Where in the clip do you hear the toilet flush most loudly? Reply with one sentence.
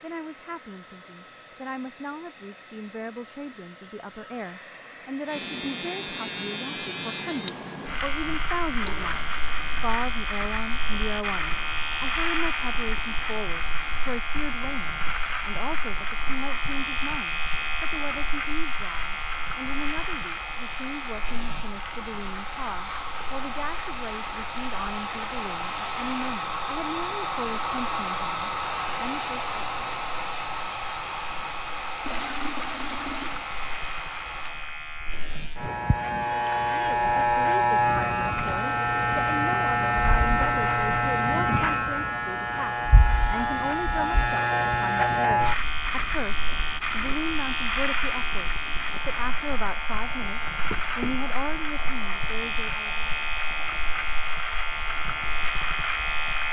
The volume of the toilet flush peaks at 33 seconds.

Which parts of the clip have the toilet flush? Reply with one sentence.
The toilet flush can be heard from 8.7 to 9.4 s and from 32.0 to 33.5 s.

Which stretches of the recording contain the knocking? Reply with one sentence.
The knocking can be heard from 50.7 to 51.3 s.